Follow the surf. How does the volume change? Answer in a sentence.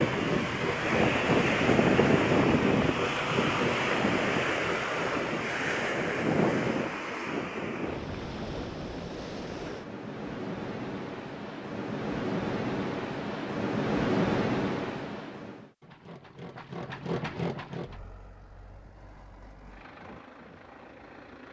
The volume of the surf goes down, then up.